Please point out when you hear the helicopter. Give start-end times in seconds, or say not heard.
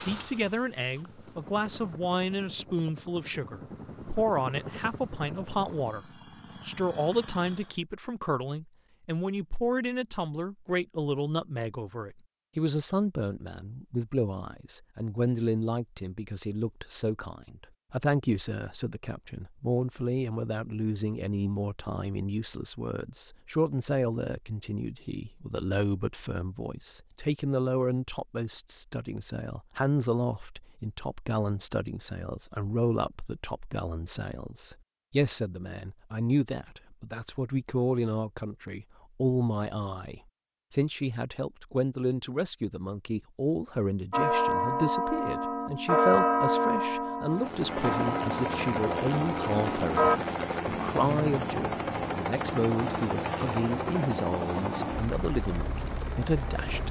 0.0-7.8, 47.3-56.8.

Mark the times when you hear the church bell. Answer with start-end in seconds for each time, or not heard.
44.1-50.2.